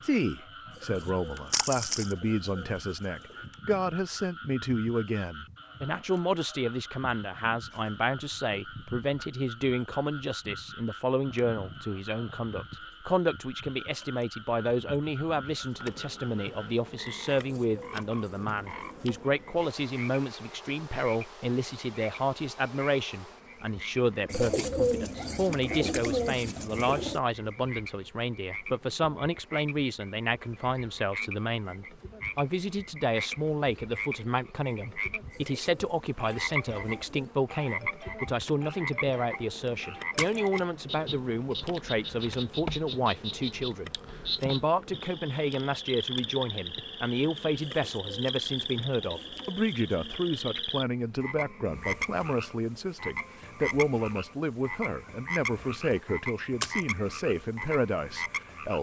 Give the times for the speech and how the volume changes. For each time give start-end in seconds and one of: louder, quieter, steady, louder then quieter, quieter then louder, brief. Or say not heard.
0.0-58.7 steady.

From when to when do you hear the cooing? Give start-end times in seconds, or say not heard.
0.7-3.5, 17.2-19.2, 24.3-27.2, 35.3-37.4, 47.6-50.5.